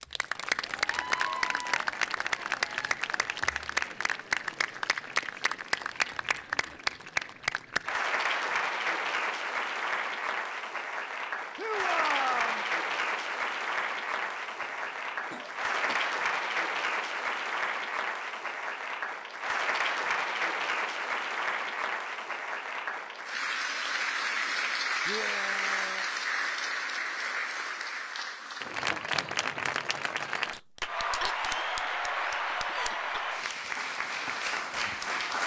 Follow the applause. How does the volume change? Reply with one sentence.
The volume of the applause stays about the same.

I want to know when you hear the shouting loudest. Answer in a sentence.
The volume of the shouting peaks at 12 seconds.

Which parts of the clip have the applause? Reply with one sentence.
The applause can be heard from 0.0 to 35.4 s.